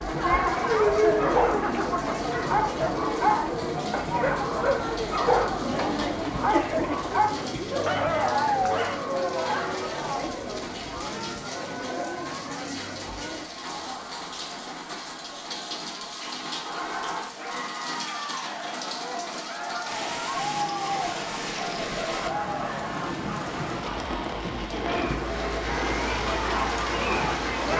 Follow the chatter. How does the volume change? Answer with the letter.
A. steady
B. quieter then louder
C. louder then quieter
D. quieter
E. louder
B.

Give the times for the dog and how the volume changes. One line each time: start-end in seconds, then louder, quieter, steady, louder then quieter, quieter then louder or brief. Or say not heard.
1.1-9.9 steady.